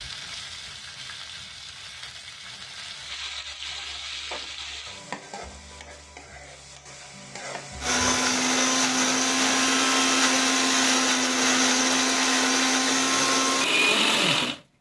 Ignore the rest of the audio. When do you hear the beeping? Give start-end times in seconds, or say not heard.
not heard.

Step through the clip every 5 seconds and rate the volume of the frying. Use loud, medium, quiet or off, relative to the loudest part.
loud, loud, off.